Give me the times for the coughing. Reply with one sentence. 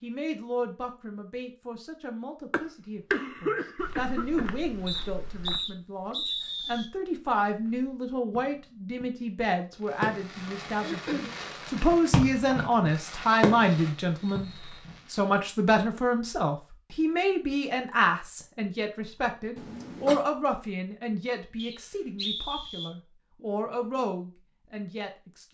The coughing can be heard from 2.5 to 4.5 s, from 10.8 to 11.3 s and from 19.6 to 20.2 s.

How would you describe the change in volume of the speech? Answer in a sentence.
The volume of the speech goes up, then down.